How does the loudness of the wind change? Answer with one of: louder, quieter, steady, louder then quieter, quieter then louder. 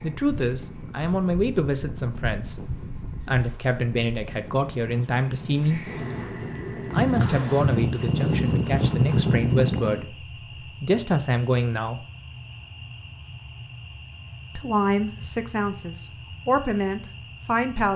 louder.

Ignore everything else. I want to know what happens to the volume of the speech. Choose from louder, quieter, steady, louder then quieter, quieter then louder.
steady.